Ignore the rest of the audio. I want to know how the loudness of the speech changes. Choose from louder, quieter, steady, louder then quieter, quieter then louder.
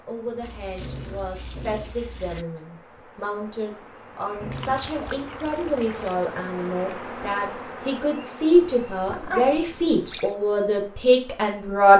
louder.